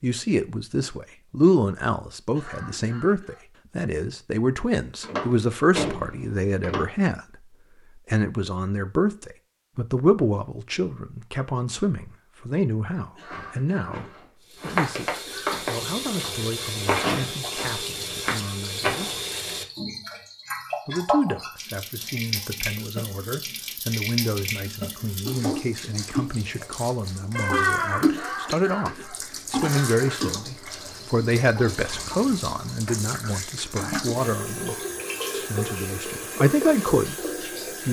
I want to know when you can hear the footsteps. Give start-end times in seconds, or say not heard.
13.3-19.1.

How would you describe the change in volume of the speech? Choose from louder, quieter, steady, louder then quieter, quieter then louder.
quieter then louder.